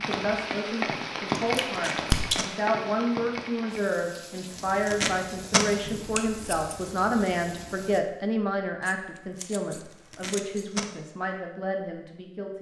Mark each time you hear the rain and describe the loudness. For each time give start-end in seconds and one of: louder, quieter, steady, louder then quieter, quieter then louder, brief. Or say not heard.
0.0-8.0 quieter.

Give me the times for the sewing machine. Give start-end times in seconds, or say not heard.
not heard.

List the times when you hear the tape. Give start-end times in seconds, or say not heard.
1.6-2.5, 4.5-5.7, 9.8-10.9.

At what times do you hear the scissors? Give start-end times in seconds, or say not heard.
1.5-2.5, 5.8-6.8, 8.8-10.8.